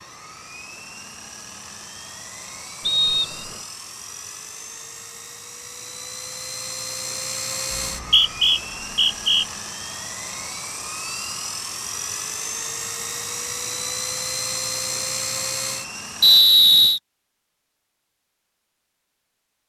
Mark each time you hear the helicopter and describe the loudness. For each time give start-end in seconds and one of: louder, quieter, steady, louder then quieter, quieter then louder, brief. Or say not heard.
0.0-16.4 louder.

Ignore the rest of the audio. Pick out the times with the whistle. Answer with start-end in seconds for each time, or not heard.
2.8-3.6, 7.7-9.4, 16.2-17.0.